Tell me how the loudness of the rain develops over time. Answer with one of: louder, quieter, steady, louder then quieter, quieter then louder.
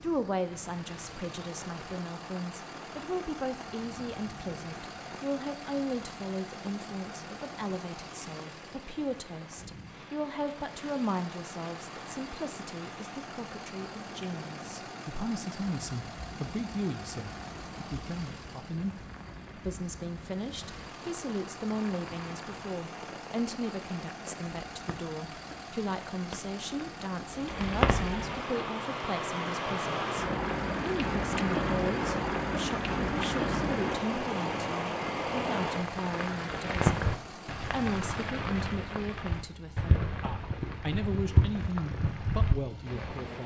louder.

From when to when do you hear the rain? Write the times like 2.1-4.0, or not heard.
0.0-43.4.